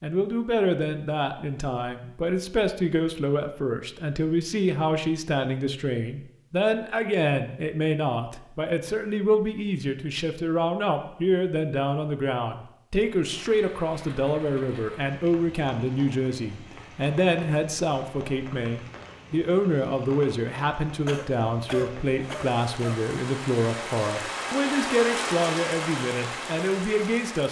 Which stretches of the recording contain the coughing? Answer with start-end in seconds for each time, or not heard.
21.1-22.9.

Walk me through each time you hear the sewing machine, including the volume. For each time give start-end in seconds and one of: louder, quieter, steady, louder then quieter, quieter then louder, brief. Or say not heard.
not heard.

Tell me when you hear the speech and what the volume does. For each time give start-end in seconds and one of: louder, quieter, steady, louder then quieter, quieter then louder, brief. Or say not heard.
0.0-27.4 steady.